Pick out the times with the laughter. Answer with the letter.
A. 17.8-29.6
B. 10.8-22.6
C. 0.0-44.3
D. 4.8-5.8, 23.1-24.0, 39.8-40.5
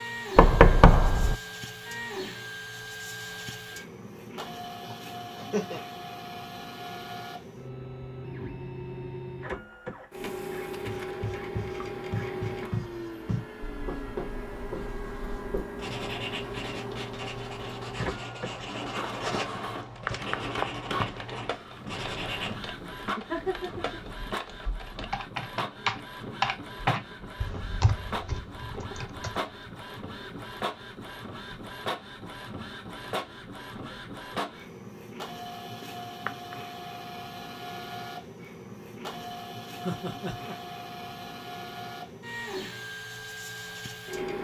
D.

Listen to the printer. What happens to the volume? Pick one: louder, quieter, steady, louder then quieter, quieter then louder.
steady.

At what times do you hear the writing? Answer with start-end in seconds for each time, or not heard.
10.8-22.6.